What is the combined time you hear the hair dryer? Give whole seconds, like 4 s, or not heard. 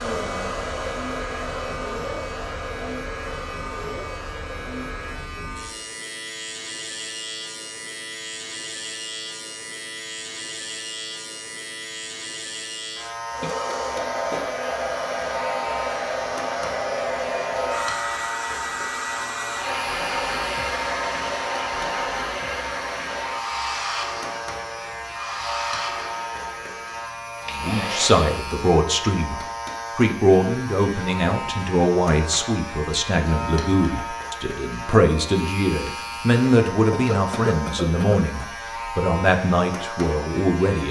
20 s.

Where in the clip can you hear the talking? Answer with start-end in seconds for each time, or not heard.
27.5-40.8.